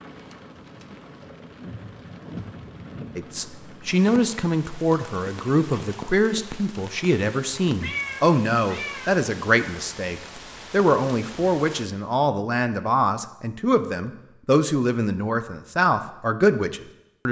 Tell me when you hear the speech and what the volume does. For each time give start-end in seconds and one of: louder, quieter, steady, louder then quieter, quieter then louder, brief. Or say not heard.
3.1-17.2 steady.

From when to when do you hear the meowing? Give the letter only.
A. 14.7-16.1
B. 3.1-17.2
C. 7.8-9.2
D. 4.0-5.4
C.